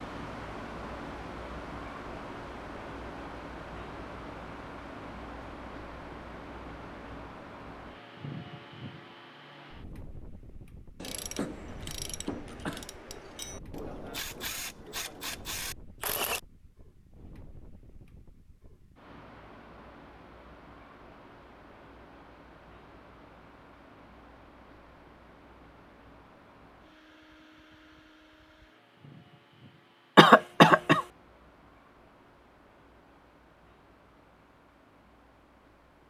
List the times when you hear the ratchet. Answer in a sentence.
You can hear the ratchet from 11.0 to 16.4 s.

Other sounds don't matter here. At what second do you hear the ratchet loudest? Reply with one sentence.
The volume of the ratchet peaks at 16 seconds.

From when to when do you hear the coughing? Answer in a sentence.
You can hear the coughing from 11.0 to 12.8 s and from 30.1 to 31.1 s.